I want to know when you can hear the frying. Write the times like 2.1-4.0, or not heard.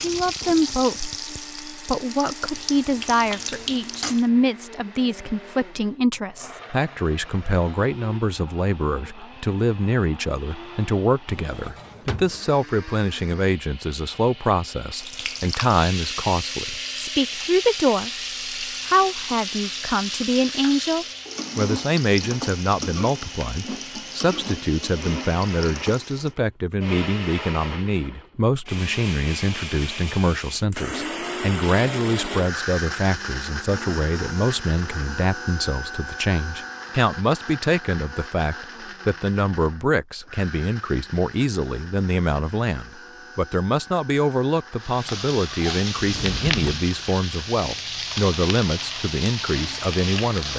0.0-4.3, 14.9-26.4, 44.8-50.5.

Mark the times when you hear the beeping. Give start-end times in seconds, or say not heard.
not heard.